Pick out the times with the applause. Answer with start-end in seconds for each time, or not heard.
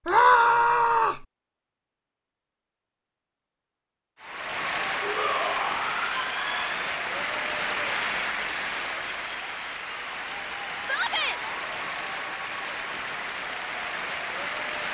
4.2-14.8.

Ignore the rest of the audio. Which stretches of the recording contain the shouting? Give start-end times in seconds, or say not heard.
0.1-1.2, 5.0-6.8, 10.8-11.4.